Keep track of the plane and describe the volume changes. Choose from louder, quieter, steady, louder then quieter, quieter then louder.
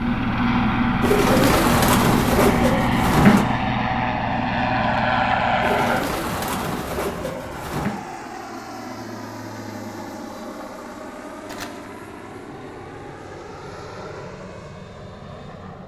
quieter.